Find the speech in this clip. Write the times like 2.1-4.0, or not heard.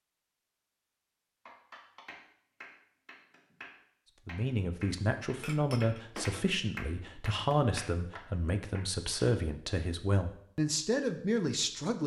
4.2-12.0.